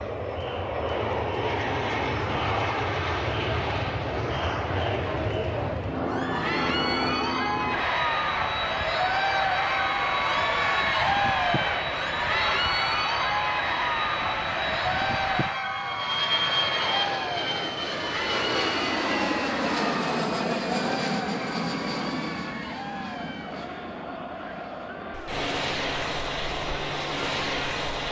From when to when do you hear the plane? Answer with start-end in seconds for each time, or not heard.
0.0-28.0.